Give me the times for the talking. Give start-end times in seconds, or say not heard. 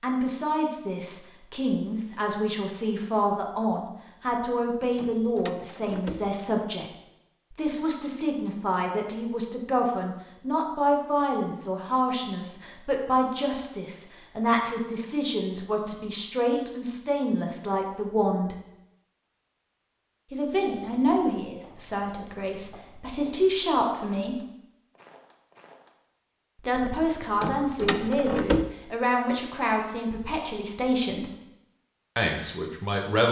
0.0-6.9, 7.5-18.6, 20.3-24.4, 26.6-31.3, 32.1-33.2.